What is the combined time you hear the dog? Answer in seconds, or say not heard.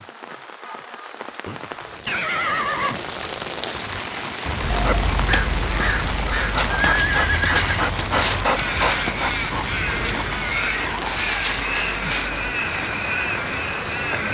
8 s.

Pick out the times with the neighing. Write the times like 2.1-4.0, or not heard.
1.4-3.1, 6.7-7.9, 9.8-11.1.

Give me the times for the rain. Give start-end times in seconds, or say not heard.
0.0-14.2.